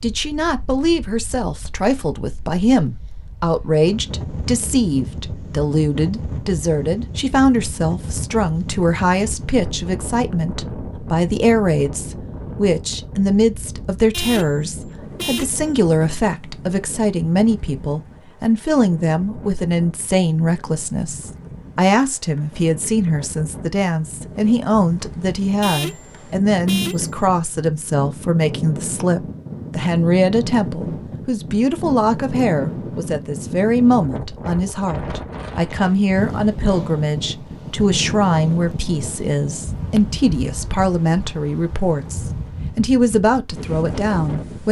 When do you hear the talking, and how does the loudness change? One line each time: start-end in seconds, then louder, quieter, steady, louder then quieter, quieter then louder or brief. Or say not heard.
0.0-44.6 steady.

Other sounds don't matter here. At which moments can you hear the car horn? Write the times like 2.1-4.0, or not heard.
14.1-15.7, 25.6-27.1.